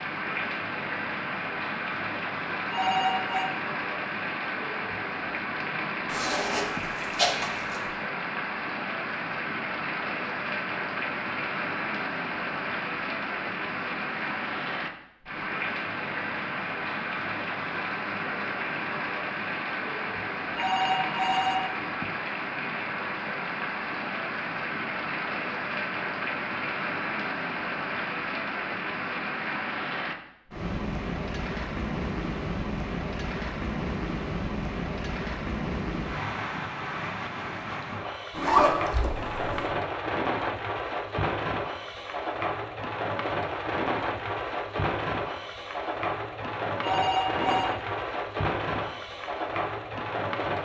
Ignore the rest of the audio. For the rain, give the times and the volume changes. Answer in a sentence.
You can hear the rain from 0.0 to 50.5 s, at a steady volume.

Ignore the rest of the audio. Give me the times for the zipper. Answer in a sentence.
You can hear the zipper from 6.0 to 7.8 s and from 38.3 to 39.7 s.